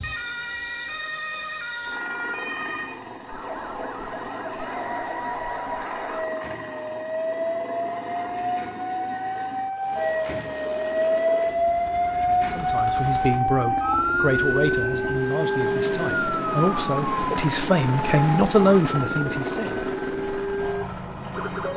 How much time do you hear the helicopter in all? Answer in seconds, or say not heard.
22 s.